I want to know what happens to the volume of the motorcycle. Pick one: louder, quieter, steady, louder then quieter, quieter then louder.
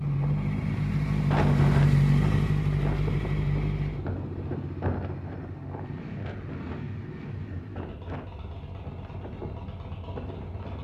quieter.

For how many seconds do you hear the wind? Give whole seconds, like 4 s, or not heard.
11 s.